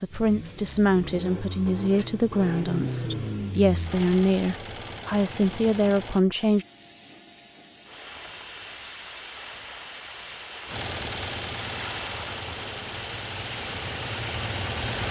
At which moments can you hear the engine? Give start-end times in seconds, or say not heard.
0.0-6.2, 10.7-15.0.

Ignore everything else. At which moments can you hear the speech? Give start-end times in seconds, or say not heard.
0.0-6.7.